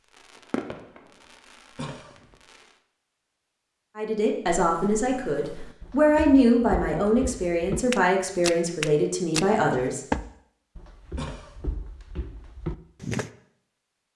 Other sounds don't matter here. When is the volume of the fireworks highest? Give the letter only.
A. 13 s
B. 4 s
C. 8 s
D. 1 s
D.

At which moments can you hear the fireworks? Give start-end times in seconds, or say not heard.
0.1-2.8.